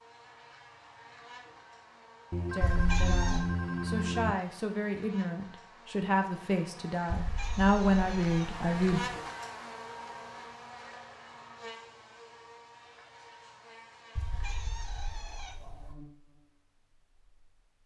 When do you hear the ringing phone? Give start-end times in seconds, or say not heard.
2.3-4.3.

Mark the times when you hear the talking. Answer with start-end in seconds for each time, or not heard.
2.5-9.0.